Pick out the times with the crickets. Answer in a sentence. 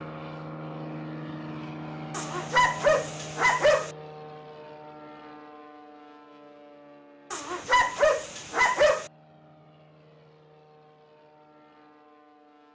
The crickets can't be heard in this clip.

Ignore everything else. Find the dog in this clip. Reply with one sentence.
You can hear the dog from 2.1 to 3.9 s and from 7.3 to 9.1 s.